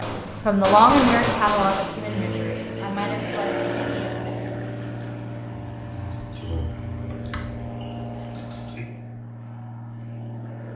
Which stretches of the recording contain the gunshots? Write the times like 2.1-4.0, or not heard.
0.0-1.9.